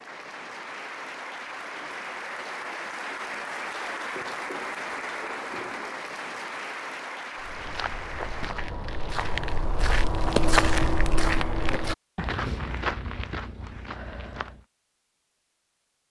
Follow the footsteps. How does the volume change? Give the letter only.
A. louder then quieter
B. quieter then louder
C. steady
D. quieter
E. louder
A.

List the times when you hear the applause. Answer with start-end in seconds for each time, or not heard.
0.0-8.6.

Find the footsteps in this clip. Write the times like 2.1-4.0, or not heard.
7.3-14.7.